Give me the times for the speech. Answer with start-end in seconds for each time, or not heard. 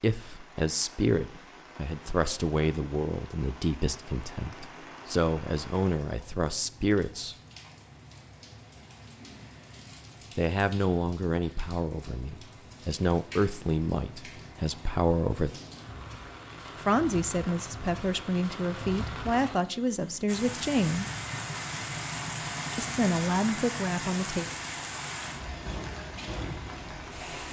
0.0-7.3, 10.3-15.6, 16.8-21.1, 22.8-24.4.